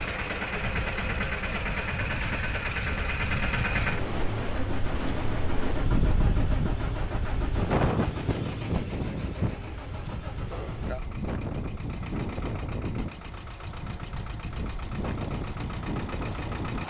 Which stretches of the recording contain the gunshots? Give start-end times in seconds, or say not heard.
not heard.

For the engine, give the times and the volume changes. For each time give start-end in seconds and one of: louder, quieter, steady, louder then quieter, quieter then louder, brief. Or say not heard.
0.0-16.8 quieter.